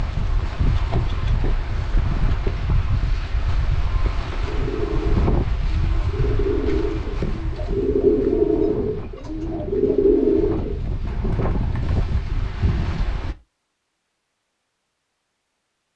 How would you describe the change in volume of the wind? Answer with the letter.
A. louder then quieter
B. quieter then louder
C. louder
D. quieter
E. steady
B.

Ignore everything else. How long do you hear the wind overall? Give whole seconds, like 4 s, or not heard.
13 s.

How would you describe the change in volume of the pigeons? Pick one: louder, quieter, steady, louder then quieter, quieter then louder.
louder then quieter.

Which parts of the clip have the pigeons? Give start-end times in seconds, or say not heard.
4.5-13.1.